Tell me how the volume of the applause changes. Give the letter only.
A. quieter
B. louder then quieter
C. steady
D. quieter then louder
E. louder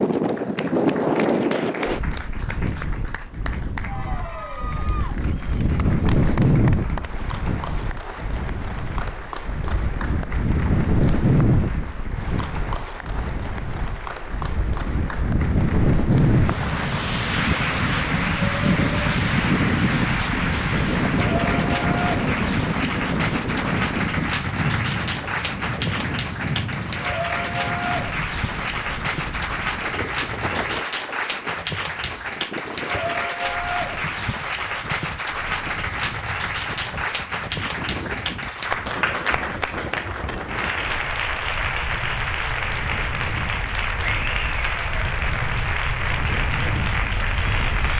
E.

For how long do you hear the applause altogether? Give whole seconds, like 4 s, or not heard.
48 s.